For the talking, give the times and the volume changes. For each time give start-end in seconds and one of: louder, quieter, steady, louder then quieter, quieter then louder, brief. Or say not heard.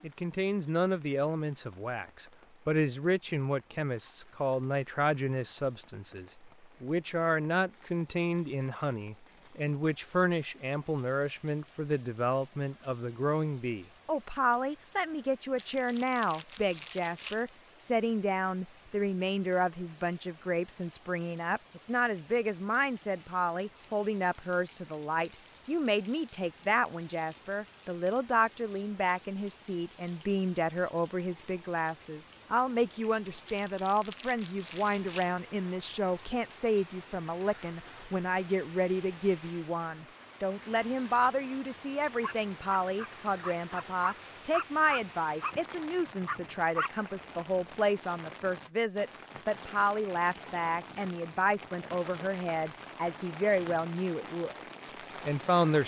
0.0-54.5 steady
55.2-55.8 brief.